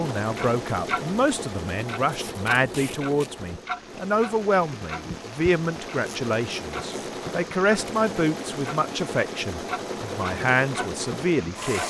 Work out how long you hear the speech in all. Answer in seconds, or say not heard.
12 s.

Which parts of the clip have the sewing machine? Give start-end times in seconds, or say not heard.
0.0-11.8.